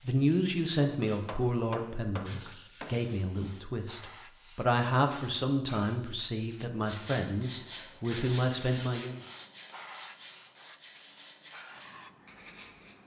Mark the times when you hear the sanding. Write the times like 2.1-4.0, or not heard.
6.8-12.9.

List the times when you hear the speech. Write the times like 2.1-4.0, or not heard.
0.0-9.2.